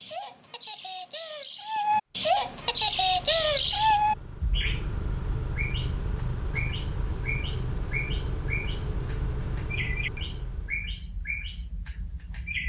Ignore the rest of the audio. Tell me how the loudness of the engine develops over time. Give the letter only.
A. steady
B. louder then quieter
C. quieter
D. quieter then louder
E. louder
E.